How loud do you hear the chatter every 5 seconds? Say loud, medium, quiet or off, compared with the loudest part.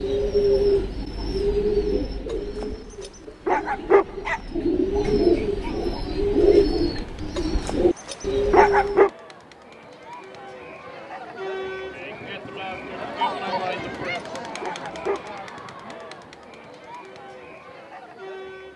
off, quiet, loud, medium.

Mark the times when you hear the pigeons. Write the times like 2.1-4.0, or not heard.
0.0-9.1.